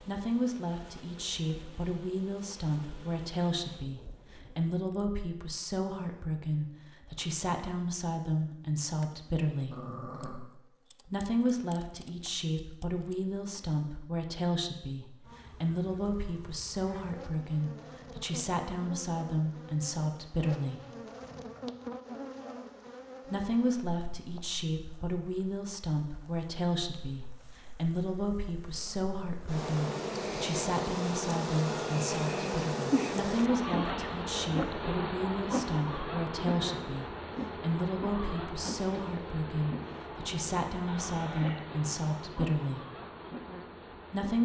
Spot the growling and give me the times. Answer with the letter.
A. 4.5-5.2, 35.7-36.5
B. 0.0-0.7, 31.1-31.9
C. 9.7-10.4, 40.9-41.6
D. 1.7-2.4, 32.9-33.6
C.